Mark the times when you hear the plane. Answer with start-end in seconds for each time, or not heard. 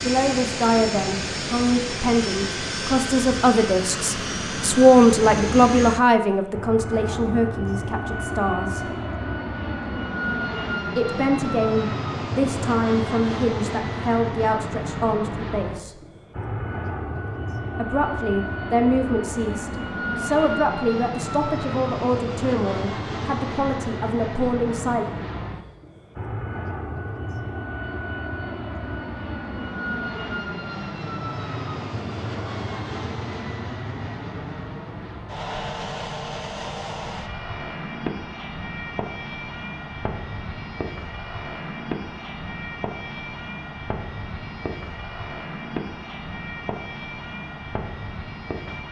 0.0-48.8.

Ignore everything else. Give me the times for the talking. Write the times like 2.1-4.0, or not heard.
0.0-8.8, 10.9-15.9, 17.8-25.1.